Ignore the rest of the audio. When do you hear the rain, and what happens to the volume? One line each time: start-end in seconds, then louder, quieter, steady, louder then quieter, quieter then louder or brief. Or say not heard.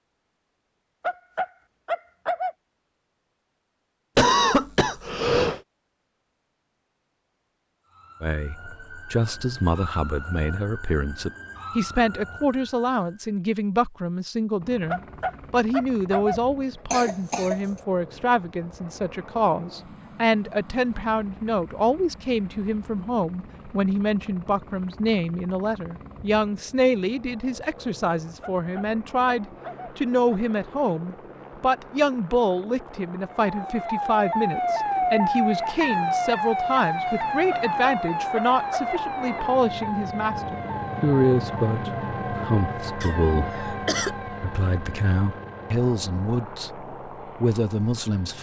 not heard.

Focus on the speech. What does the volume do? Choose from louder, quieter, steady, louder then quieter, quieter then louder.
steady.